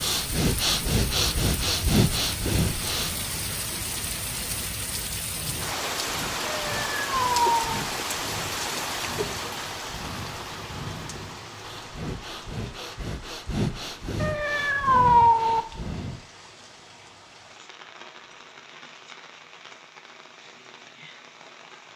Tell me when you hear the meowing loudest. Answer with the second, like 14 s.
15 s.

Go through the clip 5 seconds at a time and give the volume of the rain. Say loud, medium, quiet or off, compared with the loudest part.
loud, loud, medium, quiet, quiet.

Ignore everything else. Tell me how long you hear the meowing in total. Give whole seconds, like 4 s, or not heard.
3 s.